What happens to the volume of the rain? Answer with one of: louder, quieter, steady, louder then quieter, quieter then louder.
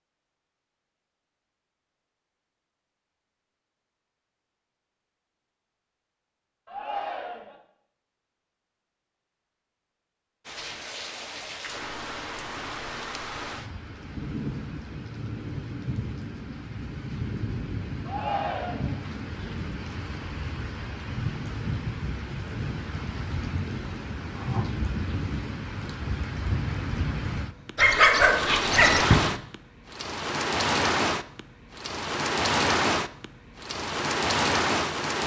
louder.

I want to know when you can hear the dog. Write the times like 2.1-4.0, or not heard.
27.8-29.3.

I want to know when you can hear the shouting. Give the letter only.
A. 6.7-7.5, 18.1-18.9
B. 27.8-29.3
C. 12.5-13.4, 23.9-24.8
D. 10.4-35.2
A.